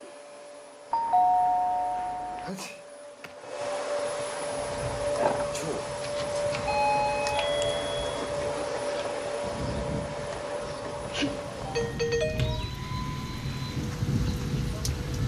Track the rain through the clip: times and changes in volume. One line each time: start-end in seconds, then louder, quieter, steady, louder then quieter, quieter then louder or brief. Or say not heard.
4.4-15.2 louder.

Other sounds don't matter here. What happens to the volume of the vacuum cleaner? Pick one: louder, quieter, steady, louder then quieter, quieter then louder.
louder then quieter.